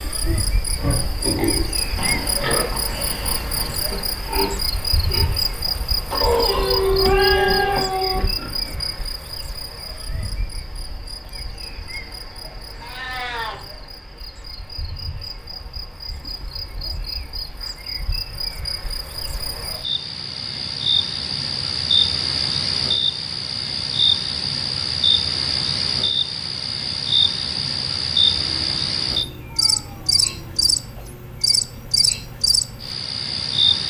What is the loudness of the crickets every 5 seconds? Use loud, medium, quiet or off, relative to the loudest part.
medium, medium, quiet, medium, loud, loud, loud.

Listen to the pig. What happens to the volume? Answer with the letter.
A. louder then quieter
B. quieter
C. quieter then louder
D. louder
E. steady
B.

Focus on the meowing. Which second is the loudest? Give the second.
7 s.